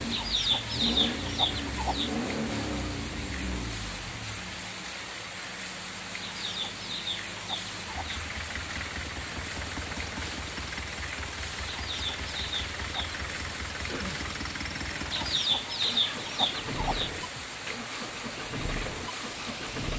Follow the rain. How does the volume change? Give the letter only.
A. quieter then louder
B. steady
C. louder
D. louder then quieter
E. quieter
B.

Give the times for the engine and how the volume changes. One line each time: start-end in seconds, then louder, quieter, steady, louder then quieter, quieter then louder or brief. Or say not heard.
0.0-19.9 quieter then louder.